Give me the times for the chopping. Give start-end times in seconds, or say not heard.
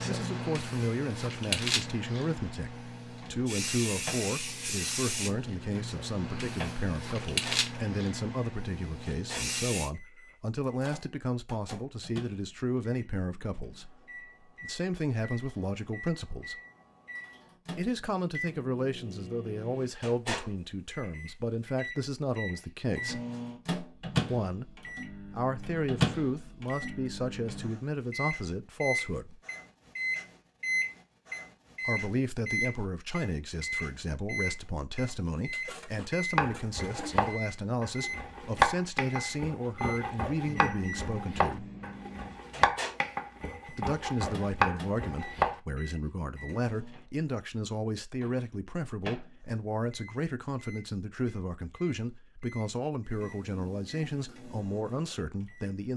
36.4-45.6.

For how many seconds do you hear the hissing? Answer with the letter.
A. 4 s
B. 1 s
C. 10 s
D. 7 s
C.